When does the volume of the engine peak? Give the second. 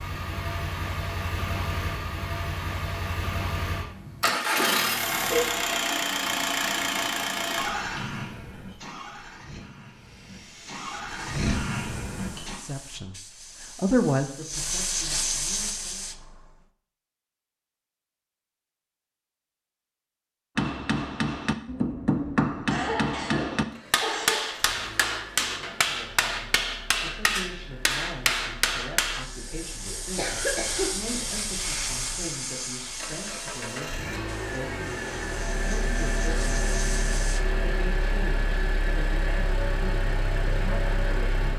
5 s.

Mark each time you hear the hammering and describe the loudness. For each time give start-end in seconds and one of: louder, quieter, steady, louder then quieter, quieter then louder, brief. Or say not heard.
20.6-29.2 steady.